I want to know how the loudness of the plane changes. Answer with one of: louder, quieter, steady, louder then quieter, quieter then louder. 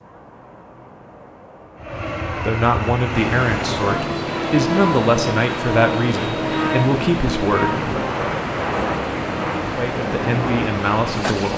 steady.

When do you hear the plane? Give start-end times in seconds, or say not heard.
1.8-11.5.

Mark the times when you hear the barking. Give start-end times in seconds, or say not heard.
not heard.